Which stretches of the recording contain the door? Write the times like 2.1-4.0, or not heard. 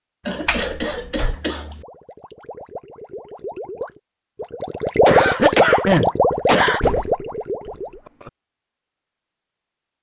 0.5-1.4, 6.3-8.3.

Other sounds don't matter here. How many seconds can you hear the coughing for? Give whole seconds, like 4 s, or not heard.
3 s.